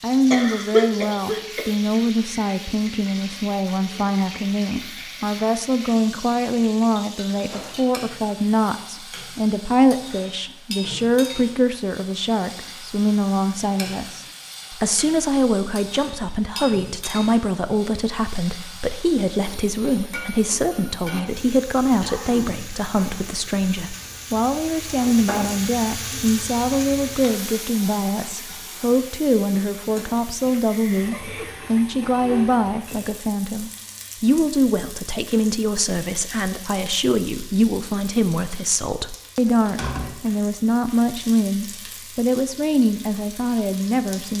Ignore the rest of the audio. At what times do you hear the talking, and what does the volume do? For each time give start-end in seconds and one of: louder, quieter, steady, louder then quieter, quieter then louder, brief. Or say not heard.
0.0-44.3 steady.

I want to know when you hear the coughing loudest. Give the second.
1 s.